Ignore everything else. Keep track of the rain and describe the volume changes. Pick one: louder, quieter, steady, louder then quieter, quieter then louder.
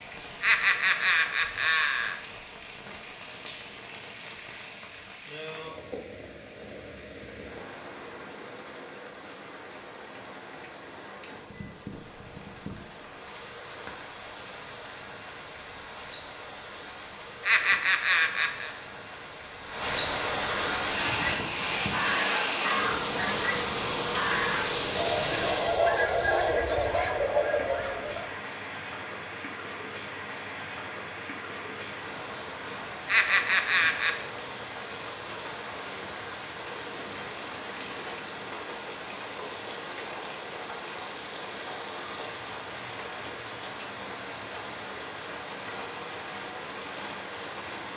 louder then quieter.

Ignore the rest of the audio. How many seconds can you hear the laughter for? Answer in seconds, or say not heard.
4 s.